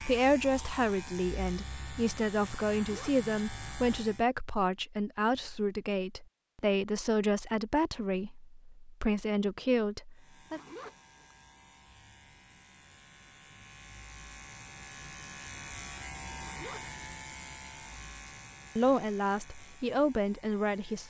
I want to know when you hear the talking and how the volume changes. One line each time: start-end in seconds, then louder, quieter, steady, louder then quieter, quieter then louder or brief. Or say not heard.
0.0-10.6 steady
18.8-21.0 brief.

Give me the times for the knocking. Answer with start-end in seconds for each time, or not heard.
not heard.